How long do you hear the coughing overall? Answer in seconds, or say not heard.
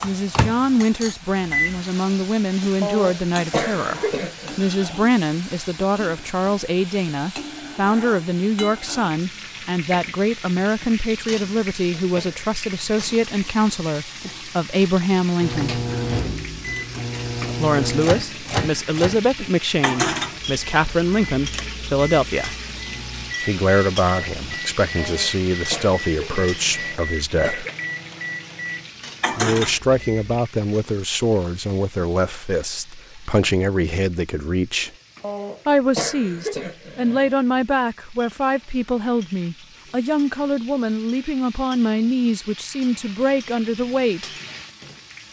7 s.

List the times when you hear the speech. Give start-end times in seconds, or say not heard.
0.0-15.8, 17.6-22.6, 23.4-27.6, 29.3-34.9, 35.6-44.3.